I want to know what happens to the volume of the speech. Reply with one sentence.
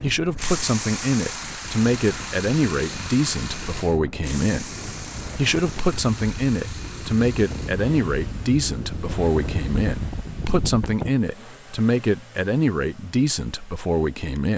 The volume of the speech stays about the same.